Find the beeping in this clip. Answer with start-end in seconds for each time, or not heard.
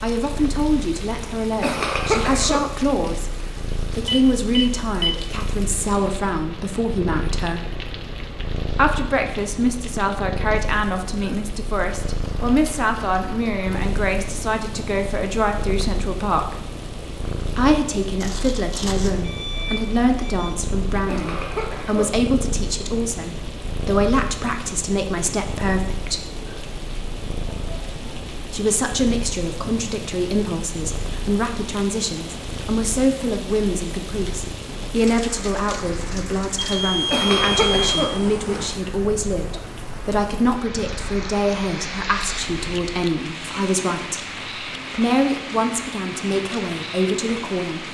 4.0-5.1, 18.2-20.5, 36.5-38.0.